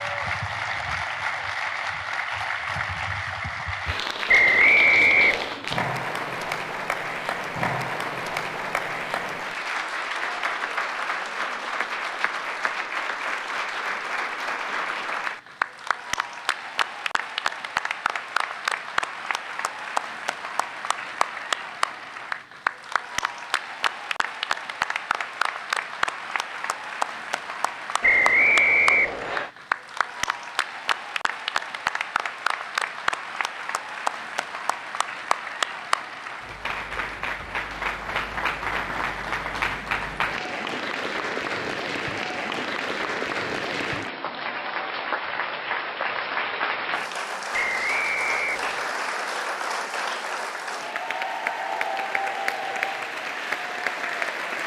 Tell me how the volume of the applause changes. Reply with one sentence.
The volume of the applause stays about the same.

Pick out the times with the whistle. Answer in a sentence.
The whistle can be heard from 4.2 to 5.5 s, from 28.0 to 29.5 s and from 47.5 to 49.0 s.